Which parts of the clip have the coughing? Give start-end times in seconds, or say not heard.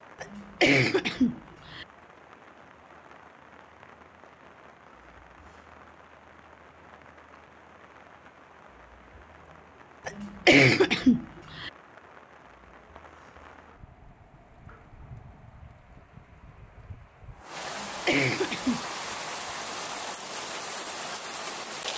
0.2-1.9, 10.1-11.7, 17.6-18.9.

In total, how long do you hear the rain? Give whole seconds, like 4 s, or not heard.
22 s.